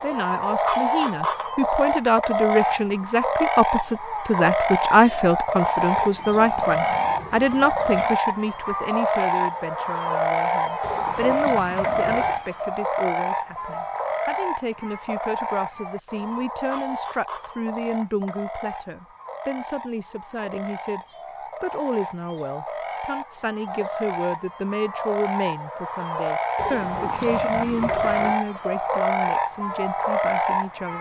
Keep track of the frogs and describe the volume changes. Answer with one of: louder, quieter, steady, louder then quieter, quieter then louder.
quieter then louder.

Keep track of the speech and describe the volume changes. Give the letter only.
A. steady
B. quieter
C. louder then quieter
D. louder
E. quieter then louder
B.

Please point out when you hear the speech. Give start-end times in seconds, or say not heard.
0.0-21.0, 21.6-30.9.